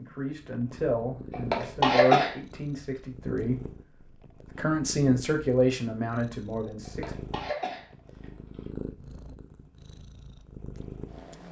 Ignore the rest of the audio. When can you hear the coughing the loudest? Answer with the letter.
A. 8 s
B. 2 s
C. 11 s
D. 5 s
B.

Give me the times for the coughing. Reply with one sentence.
The coughing can be heard from 1.3 to 2.4 s and from 6.8 to 8.7 s.